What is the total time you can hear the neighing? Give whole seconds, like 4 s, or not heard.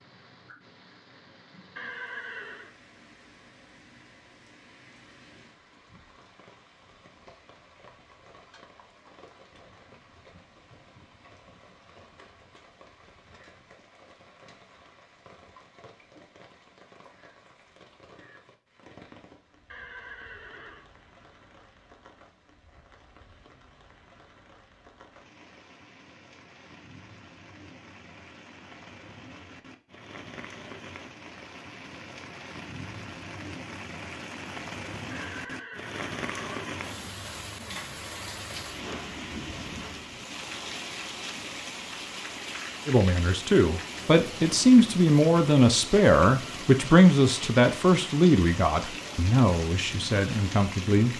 4 s.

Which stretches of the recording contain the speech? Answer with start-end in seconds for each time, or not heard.
42.9-51.1.